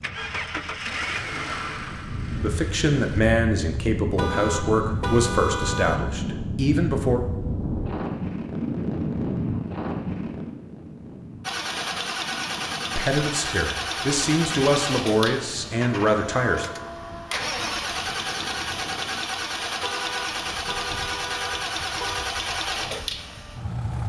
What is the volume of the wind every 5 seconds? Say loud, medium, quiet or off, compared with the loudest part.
medium, loud, medium, quiet, quiet.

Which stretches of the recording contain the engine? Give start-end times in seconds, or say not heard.
0.0-3.2, 11.4-24.0.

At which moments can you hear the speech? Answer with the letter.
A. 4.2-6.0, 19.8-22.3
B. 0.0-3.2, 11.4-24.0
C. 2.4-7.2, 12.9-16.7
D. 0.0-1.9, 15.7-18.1
C.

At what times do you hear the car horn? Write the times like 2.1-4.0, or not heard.
4.2-6.0, 19.8-22.3.